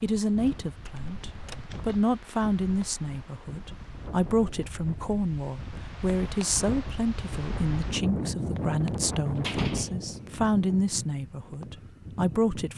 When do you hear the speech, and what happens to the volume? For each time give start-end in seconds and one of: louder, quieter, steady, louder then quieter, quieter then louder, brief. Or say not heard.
0.0-12.7 steady.